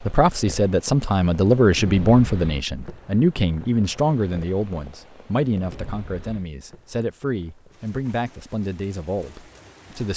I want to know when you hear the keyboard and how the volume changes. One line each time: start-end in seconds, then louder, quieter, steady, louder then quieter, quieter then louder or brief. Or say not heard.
not heard.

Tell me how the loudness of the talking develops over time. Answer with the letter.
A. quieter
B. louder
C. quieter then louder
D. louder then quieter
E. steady
A.